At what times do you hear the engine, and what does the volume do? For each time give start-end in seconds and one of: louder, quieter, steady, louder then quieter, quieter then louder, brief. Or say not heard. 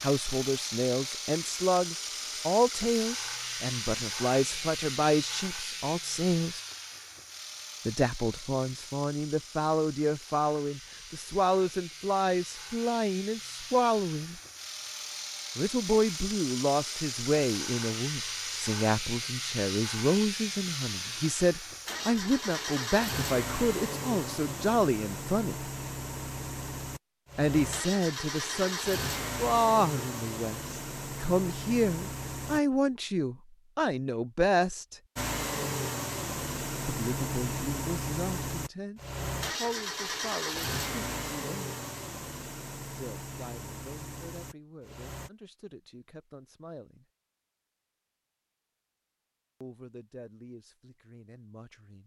0.0-32.6 quieter then louder
35.1-45.3 quieter.